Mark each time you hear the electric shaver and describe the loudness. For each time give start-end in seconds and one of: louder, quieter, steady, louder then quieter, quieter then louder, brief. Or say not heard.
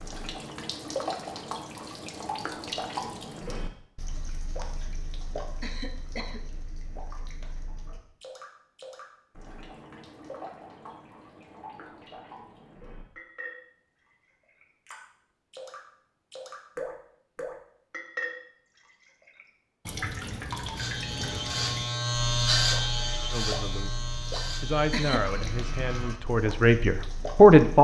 20.8-26.2 louder then quieter.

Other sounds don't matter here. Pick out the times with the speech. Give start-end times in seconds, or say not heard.
23.3-27.7.